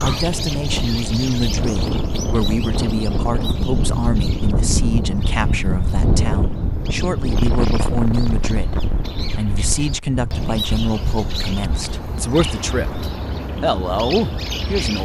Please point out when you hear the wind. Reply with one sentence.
The wind can be heard from 0.2 to 12.1 s.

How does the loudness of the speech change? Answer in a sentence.
The volume of the speech stays about the same.